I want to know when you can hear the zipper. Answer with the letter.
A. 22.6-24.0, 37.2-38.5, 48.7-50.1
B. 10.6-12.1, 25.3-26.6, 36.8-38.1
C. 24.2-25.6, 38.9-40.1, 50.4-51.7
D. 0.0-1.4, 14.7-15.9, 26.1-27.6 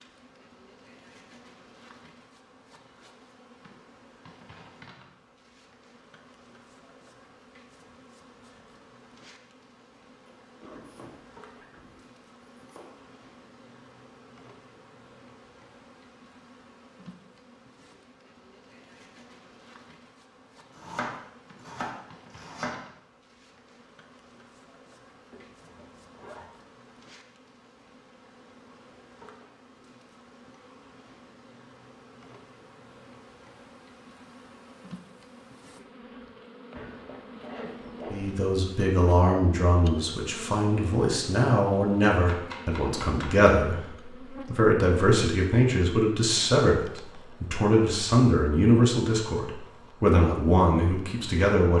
B.